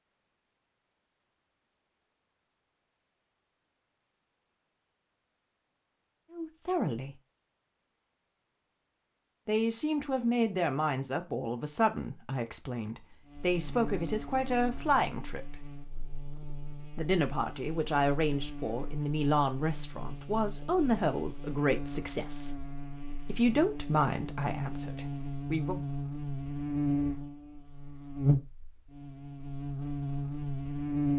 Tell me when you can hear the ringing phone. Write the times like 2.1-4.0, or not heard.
not heard.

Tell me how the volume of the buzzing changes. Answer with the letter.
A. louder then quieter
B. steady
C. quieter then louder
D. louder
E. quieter
D.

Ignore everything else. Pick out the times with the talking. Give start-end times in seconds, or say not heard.
6.3-7.2, 9.4-15.7, 16.9-22.6, 23.2-25.8.